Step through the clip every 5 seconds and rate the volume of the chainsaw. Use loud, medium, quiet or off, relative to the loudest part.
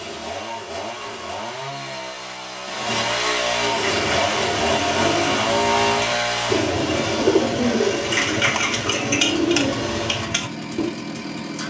loud, loud, medium.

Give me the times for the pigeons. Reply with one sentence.
You can hear the pigeons from 3.9 to 10.9 s.